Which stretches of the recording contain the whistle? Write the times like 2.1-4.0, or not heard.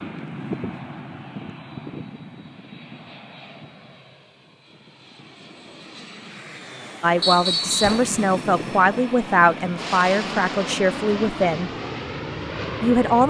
7.2-8.1.